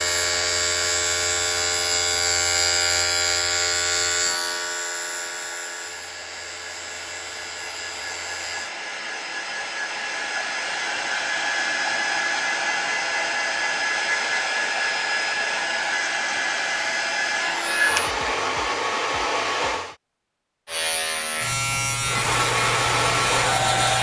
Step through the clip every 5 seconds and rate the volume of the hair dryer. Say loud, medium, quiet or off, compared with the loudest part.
quiet, medium, loud, loud, loud.